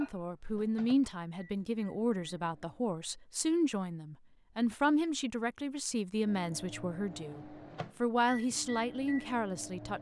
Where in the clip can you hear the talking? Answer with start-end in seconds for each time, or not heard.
0.0-7.4, 8.0-9.9.